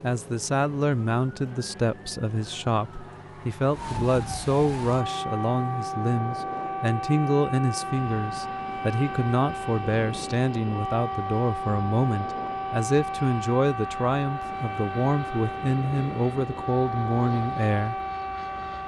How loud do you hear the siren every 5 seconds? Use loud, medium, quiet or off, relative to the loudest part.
medium, loud, loud, loud.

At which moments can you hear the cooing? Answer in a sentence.
The cooing can't be heard in this clip.